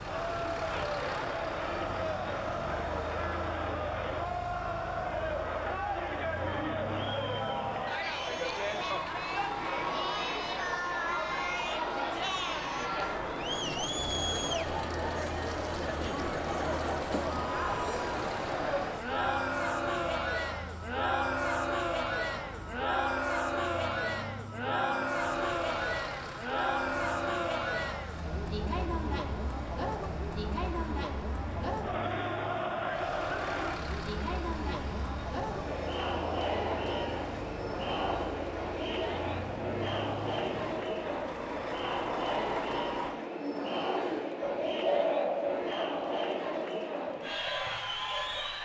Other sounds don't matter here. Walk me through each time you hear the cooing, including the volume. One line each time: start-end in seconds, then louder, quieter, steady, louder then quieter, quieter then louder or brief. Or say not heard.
43.2-48.5 louder then quieter.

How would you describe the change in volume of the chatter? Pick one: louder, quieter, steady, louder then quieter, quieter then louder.
steady.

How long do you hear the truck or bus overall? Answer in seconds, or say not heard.
43 s.